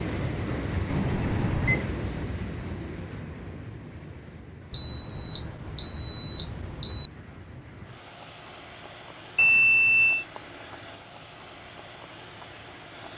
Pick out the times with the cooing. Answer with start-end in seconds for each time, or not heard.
not heard.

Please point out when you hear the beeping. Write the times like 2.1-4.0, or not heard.
0.8-1.9, 4.7-7.1, 9.3-10.2.